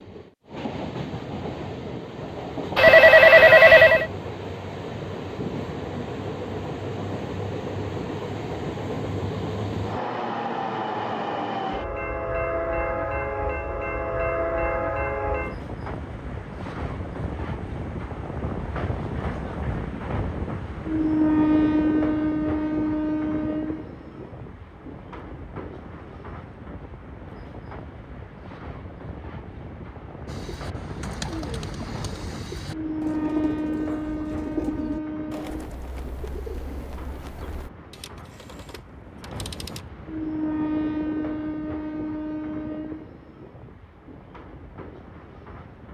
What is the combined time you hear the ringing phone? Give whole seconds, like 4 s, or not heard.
3 s.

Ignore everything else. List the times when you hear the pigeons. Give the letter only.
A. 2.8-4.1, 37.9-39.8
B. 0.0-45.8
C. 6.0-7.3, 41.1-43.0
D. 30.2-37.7
D.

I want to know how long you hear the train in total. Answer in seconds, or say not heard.
46 s.